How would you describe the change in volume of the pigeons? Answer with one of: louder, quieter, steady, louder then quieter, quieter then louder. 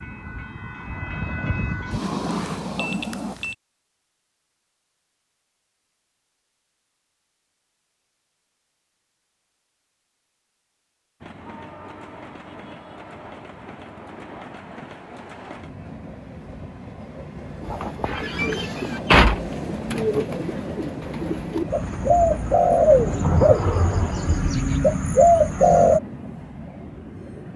quieter then louder.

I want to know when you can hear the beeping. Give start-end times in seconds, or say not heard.
1.9-3.5.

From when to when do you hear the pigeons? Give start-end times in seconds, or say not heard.
17.6-26.0.